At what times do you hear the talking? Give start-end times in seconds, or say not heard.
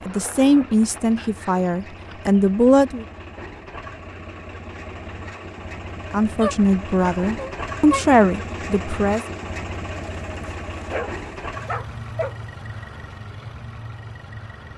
0.1-3.0, 6.1-9.2.